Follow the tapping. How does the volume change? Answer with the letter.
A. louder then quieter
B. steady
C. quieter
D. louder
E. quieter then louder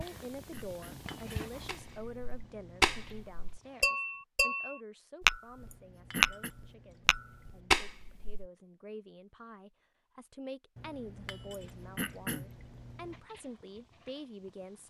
D.